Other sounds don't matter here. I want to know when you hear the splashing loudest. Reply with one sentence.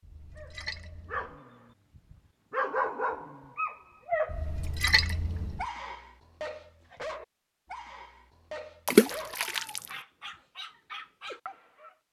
The volume of the splashing peaks at 9 seconds.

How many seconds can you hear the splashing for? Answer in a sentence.
The splashing can be heard for 4 seconds in total.